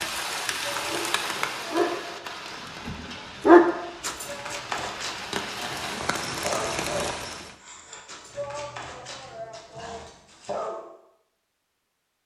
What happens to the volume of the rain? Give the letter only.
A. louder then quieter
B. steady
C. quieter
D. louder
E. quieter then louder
E.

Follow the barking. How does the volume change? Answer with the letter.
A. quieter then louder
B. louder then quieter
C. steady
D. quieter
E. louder
B.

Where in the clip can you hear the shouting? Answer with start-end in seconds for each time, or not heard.
0.6-1.8, 4.2-4.8, 8.3-10.1.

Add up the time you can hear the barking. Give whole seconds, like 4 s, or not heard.
10 s.